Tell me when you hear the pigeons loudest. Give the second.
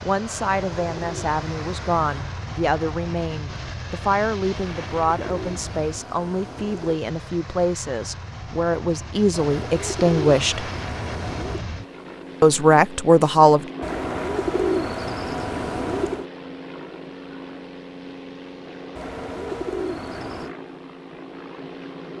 15 s.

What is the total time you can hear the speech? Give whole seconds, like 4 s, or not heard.
12 s.